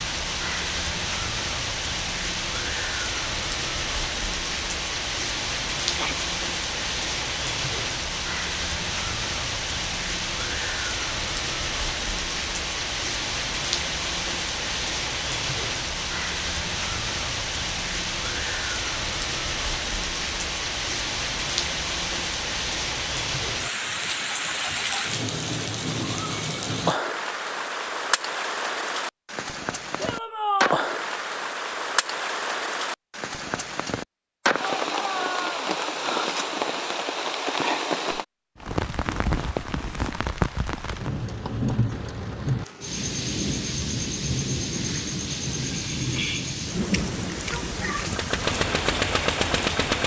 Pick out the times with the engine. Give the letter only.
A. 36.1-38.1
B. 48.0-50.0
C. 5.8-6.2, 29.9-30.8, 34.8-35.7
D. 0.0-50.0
B.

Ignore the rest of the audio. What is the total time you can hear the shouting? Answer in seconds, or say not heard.
2 s.